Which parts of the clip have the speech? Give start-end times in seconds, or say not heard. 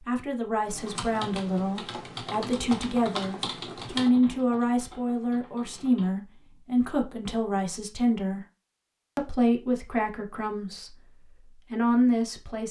0.0-8.4, 9.2-12.6.